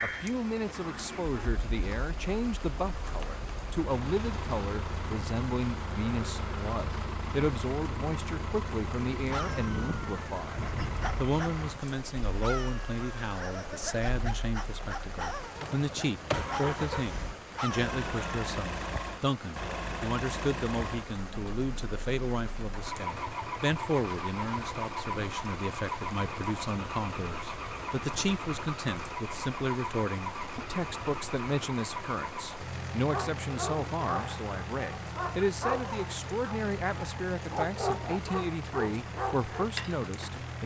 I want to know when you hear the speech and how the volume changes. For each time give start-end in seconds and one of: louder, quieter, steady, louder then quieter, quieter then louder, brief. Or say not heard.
0.0-40.6 steady.